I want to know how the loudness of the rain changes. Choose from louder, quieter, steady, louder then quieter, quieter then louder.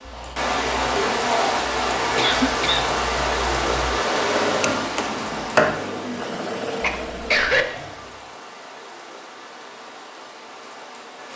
quieter.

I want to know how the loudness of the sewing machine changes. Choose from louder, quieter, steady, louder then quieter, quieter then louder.
louder then quieter.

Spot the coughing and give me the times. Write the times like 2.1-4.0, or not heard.
2.1-2.9, 6.8-7.7.